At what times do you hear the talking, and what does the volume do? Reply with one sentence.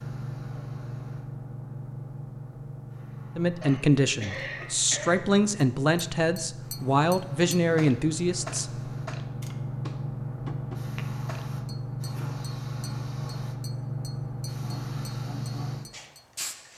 The talking can be heard from 3.4 to 8.9 s, at a steady volume.